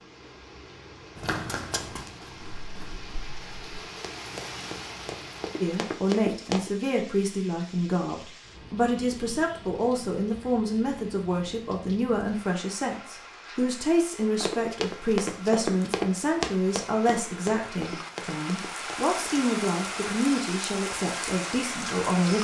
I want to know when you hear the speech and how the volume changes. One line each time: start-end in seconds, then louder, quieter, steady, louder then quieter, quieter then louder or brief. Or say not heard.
5.6-22.3 steady.